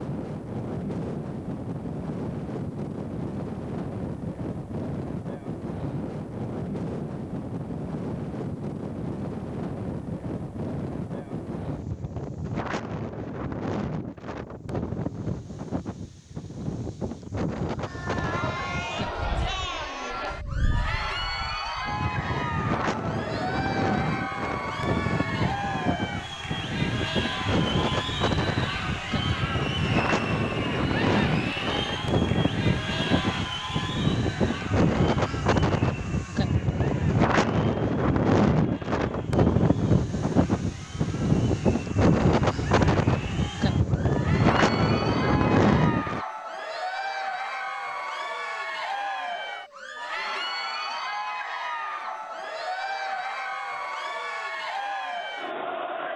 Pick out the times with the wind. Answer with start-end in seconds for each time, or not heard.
0.0-46.2.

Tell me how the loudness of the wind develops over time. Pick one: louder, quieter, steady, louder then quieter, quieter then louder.
louder.